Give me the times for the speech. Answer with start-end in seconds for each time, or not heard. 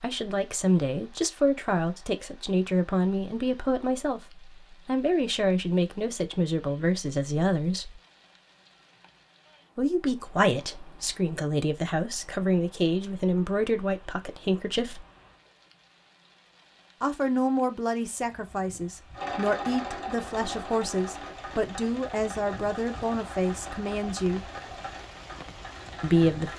0.0-8.0, 9.8-15.1, 17.0-24.5, 26.0-26.5.